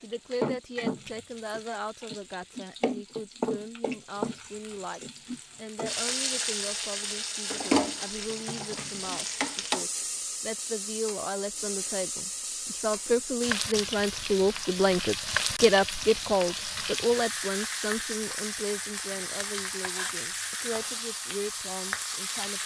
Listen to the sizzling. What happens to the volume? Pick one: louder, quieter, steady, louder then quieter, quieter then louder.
steady.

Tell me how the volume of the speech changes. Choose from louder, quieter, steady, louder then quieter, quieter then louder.
louder then quieter.